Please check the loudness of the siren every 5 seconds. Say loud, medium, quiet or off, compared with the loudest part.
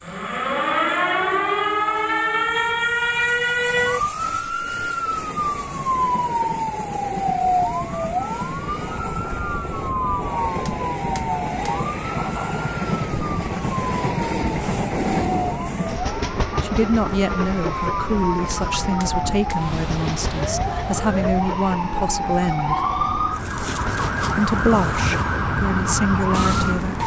loud, loud, medium, medium, loud, loud.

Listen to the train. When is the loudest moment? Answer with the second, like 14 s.
15 s.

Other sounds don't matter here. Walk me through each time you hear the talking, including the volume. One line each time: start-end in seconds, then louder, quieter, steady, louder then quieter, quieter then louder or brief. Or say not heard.
16.6-22.8 steady
24.4-27.0 brief.